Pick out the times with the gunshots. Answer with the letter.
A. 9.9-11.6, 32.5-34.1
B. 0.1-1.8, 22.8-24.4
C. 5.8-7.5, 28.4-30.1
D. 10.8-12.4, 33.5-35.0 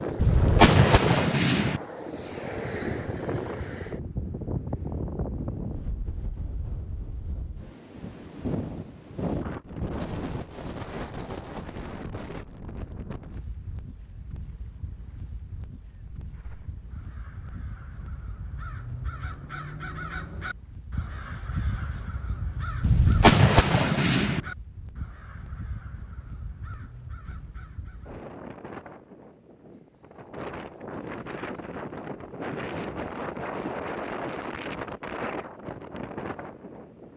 B.